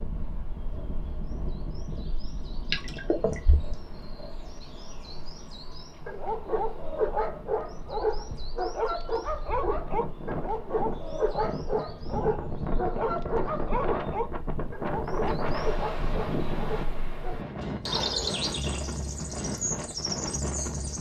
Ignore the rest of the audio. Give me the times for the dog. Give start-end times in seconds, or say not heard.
6.0-17.5.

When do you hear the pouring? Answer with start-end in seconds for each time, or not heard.
2.7-3.8.